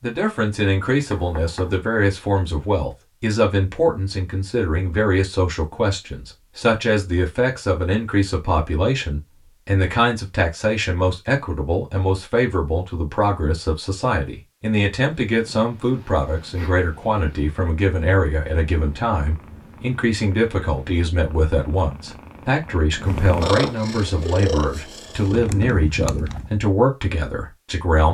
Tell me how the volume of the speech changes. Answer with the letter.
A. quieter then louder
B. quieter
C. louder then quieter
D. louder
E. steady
E.